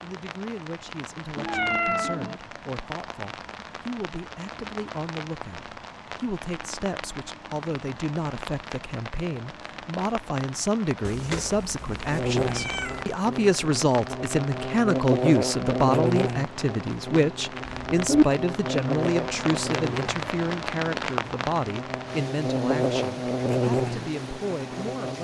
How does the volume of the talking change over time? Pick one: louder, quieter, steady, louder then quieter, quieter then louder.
louder then quieter.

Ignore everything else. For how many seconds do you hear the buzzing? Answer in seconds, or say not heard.
13 s.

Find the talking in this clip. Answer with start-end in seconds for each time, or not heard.
0.0-25.2.